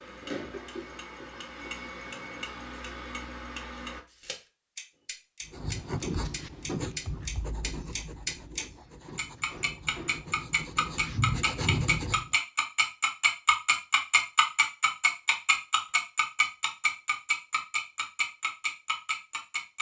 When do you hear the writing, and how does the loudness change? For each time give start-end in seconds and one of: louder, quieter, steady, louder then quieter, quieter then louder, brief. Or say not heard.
5.5-12.3 quieter then louder.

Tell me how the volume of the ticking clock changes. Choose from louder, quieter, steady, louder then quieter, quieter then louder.
louder.